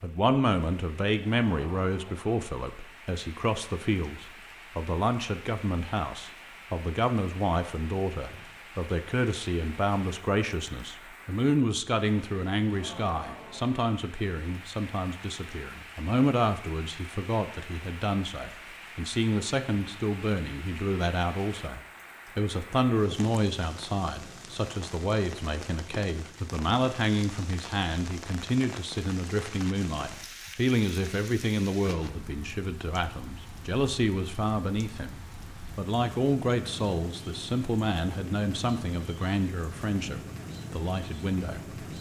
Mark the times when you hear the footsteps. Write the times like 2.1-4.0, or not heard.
not heard.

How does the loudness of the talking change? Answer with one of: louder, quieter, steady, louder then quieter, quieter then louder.
steady.